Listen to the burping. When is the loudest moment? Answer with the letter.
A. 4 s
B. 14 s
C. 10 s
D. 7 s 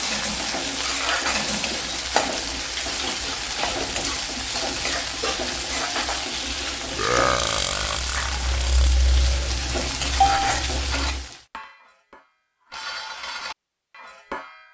D.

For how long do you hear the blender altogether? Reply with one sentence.
You can't hear the blender here.